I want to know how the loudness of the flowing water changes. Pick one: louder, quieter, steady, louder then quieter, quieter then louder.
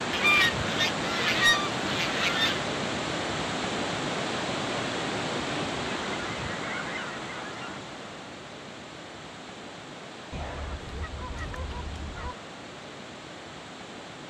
quieter.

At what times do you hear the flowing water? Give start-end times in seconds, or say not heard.
0.0-14.2.